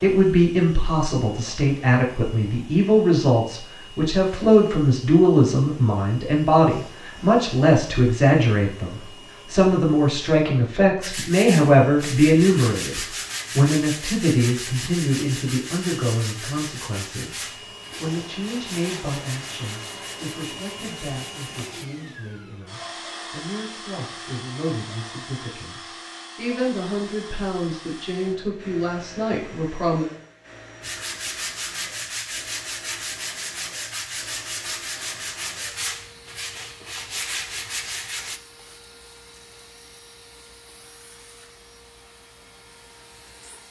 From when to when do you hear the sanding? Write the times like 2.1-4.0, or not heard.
11.0-21.9, 30.8-38.4.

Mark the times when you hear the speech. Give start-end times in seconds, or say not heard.
0.0-17.4, 18.0-30.1.